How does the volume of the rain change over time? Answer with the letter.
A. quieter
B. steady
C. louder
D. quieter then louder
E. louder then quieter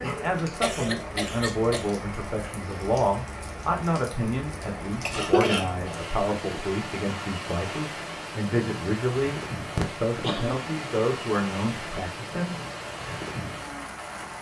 B.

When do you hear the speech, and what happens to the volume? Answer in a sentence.
You can hear the speech from 0.0 to 12.6 s, at a steady volume.